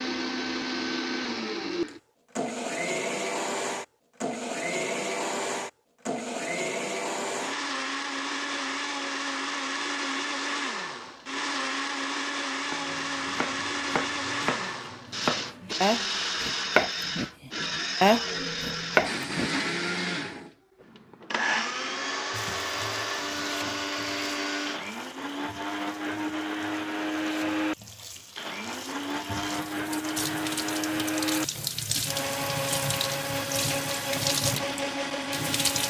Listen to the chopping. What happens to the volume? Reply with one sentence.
The loudness of the chopping goes up.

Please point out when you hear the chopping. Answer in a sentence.
The chopping can be heard from 12.7 to 19.5 s.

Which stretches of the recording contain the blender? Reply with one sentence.
The blender can be heard from 0.0 to 35.8 s.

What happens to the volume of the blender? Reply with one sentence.
The loudness of the blender stays about the same.